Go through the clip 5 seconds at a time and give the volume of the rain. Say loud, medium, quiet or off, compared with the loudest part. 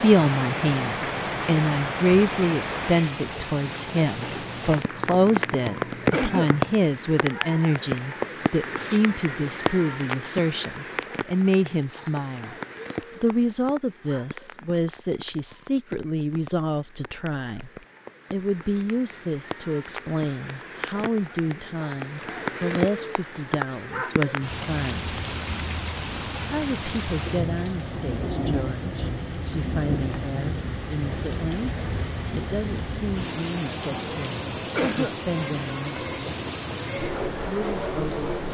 loud, loud, medium, quiet, loud, loud, loud, loud.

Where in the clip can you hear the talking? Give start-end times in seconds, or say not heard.
0.0-12.6, 13.2-25.1, 26.4-31.7, 32.4-36.1, 37.5-38.4.